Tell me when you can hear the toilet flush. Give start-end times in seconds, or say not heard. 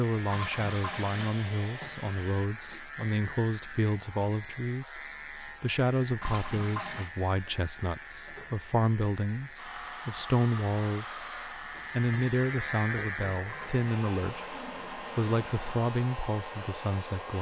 0.2-1.4, 6.2-7.1, 13.4-15.8.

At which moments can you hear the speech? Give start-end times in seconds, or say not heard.
0.0-11.2, 11.9-17.3.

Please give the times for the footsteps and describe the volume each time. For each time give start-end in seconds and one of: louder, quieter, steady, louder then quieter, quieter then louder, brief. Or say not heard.
not heard.